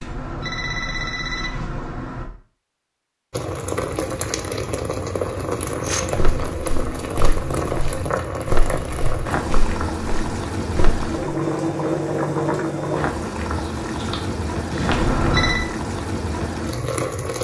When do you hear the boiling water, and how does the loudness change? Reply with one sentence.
The boiling water can be heard from 3.3 to 17.3 s, at a steady volume.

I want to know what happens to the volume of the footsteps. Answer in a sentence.
The volume of the footsteps goes up, then down.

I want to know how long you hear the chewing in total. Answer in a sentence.
The chewing can be heard for 2 seconds in total.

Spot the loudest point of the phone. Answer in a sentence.
The loudest moment of the phone is at 15 seconds.